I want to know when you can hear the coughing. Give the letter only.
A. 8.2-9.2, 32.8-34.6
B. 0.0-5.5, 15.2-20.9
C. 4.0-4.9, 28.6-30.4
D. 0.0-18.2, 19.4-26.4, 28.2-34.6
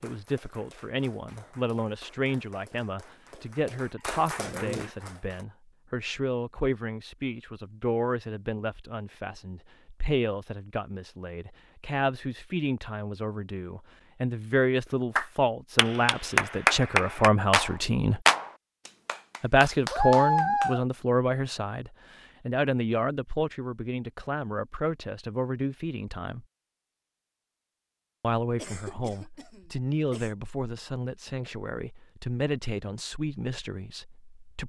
C.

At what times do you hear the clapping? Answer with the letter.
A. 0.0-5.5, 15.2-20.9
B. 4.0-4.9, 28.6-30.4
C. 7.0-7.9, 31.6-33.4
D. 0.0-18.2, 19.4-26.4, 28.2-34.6
A.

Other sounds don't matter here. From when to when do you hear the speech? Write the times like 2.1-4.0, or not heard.
0.0-18.2, 19.4-26.4, 28.2-34.6.